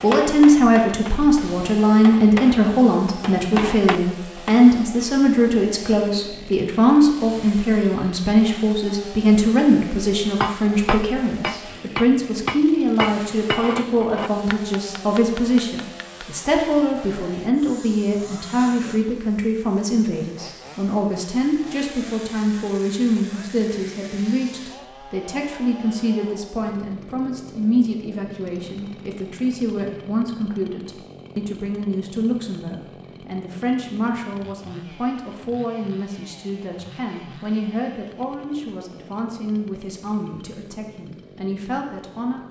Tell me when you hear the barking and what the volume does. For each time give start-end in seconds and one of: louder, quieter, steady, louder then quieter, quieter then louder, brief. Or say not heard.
not heard.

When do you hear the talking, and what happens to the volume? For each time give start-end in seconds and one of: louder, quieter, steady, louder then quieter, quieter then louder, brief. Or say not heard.
0.0-42.4 quieter.